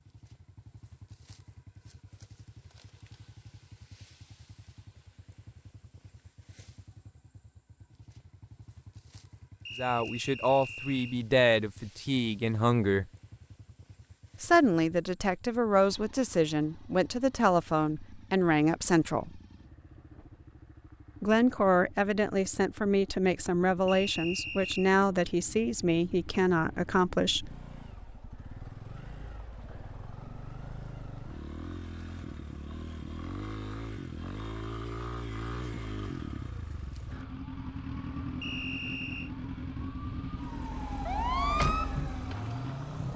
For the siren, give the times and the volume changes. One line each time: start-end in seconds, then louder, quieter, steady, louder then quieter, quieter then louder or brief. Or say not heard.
36.9-43.1 louder.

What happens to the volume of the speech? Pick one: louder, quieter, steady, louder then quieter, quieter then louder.
steady.